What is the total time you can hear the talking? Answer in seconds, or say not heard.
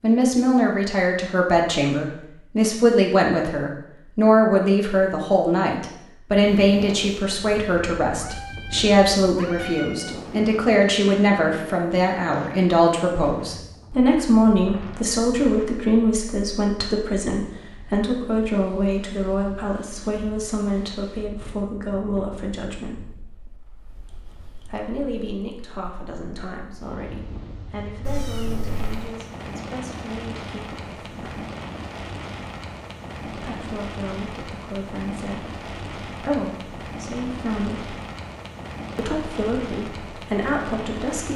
37 s.